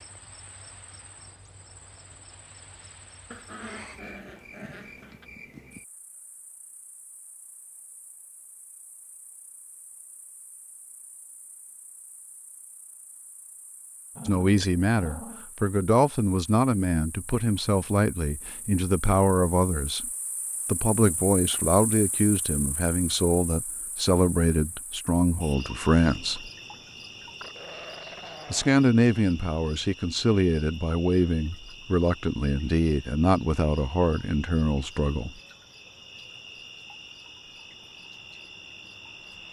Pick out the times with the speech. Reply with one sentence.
You can hear the speech from 14.2 to 20.1 s, from 20.6 to 26.5 s and from 28.5 to 35.3 s.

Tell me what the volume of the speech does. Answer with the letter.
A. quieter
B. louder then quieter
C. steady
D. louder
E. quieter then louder
C.